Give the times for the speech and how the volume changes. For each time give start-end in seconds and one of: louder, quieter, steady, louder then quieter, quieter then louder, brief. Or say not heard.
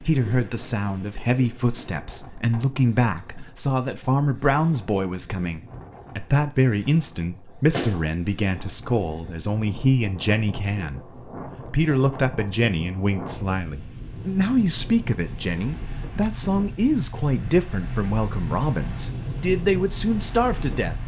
0.0-20.9 steady.